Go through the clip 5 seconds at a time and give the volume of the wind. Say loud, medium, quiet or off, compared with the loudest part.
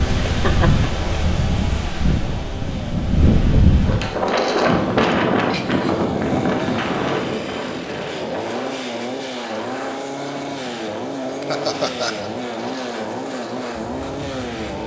loud, loud, quiet.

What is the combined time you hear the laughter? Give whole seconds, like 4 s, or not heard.
2 s.